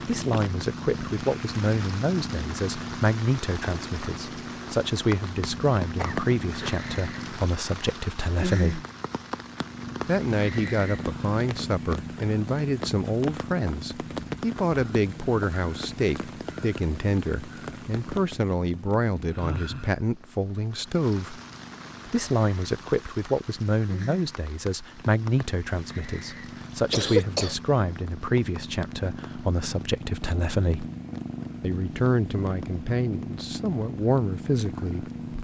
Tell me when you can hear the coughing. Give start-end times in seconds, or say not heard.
6.0-6.8, 26.9-27.6.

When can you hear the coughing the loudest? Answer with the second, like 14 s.
27 s.